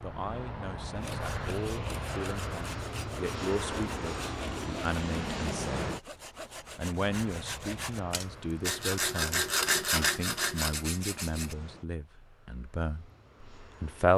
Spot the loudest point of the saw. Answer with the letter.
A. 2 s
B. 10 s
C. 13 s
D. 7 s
B.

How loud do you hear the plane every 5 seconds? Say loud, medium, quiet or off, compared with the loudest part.
loud, loud, quiet.